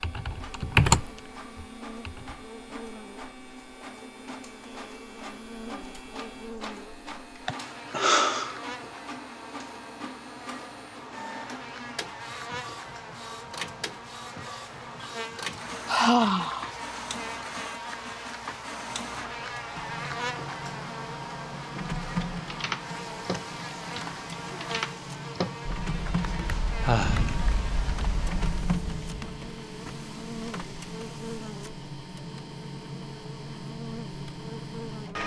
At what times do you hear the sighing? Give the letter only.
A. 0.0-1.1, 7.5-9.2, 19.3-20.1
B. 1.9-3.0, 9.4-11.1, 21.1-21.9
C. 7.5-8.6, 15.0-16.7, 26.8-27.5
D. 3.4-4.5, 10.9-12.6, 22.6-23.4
C.